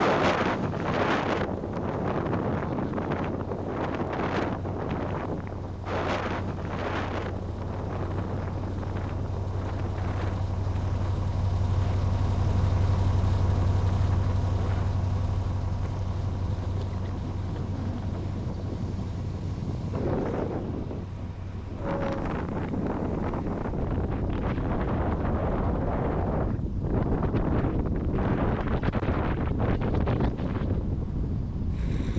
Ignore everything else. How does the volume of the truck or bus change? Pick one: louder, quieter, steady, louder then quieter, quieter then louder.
louder then quieter.